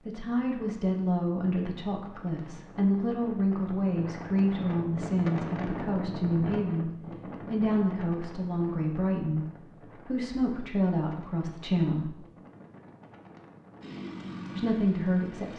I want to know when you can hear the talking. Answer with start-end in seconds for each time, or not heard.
0.1-12.2, 14.6-15.5.